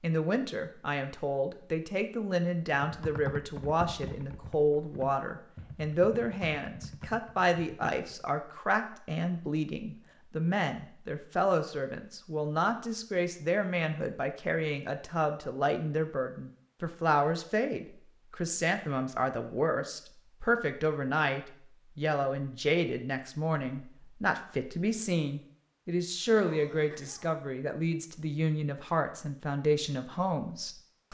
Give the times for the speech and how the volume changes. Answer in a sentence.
You can hear the speech from 0.0 to 31.1 s, at a steady volume.